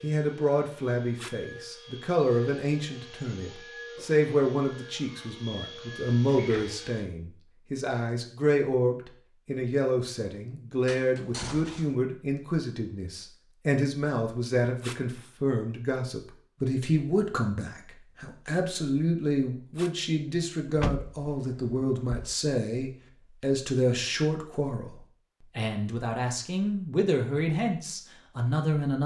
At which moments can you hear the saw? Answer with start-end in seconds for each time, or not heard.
not heard.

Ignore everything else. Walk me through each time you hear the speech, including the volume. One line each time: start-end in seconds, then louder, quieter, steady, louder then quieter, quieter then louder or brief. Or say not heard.
0.0-29.0 steady.